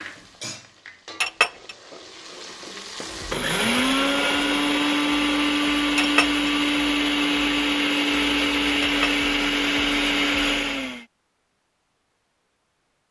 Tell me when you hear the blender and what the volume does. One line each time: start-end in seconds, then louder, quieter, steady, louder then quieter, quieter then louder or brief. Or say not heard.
3.1-11.1 steady.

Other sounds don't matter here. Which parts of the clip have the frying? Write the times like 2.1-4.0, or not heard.
0.0-3.4.